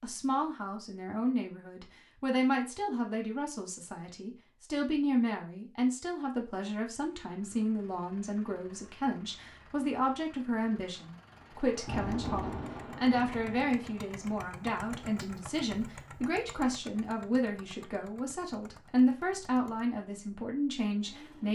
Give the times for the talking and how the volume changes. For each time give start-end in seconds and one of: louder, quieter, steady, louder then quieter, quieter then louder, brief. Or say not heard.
0.0-21.4 steady.